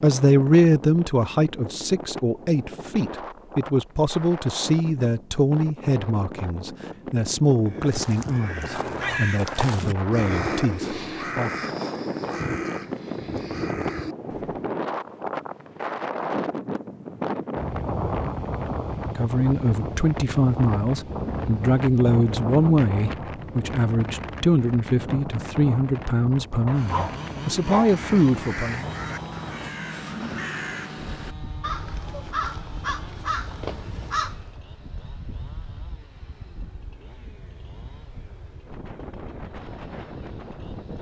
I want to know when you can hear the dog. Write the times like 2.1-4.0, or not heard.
26.6-28.0.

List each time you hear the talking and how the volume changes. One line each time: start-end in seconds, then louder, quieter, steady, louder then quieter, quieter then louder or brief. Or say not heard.
0.0-11.5 quieter
19.1-28.9 steady.